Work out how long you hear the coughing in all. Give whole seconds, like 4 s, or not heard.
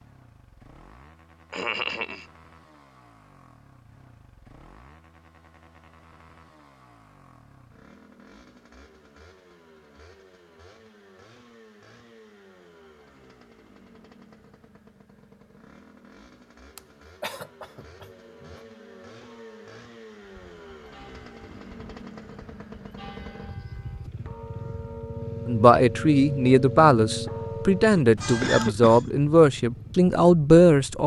4 s.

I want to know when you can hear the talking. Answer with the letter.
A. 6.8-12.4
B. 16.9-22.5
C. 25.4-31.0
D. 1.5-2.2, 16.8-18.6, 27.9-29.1
C.